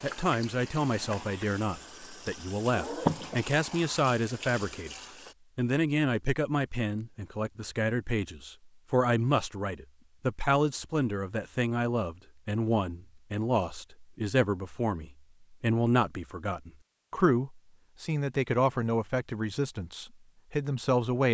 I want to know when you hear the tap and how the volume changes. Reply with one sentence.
The tap can be heard from 0.0 to 5.3 s, getting louder then quieter.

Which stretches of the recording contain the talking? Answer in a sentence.
The talking can be heard from 0.0 to 4.9 s and from 5.5 to 21.2 s.